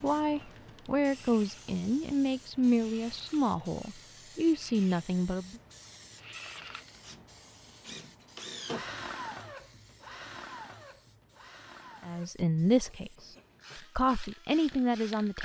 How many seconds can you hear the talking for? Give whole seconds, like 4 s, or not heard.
8 s.